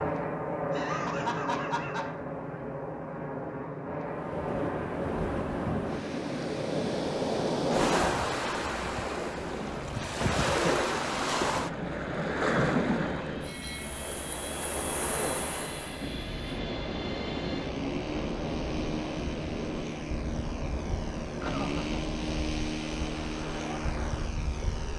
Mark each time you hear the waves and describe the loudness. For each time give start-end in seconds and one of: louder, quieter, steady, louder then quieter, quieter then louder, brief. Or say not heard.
4.0-24.9 quieter.